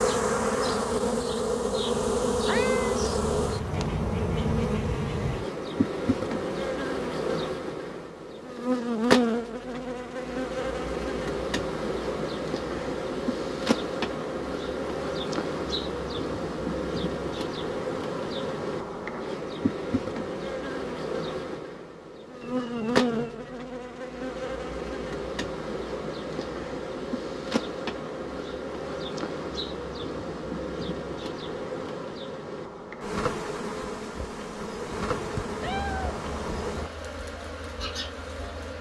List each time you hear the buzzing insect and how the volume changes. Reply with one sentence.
The buzzing insect can be heard from 0.0 to 38.7 s, getting quieter.